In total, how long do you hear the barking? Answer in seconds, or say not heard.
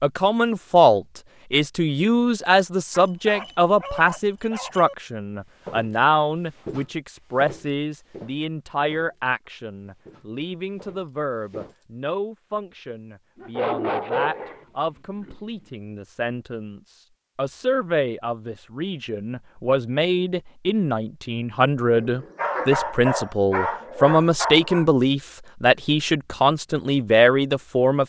7 s.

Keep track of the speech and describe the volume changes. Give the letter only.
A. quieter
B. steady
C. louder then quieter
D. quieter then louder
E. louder
D.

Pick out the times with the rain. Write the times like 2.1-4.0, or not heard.
not heard.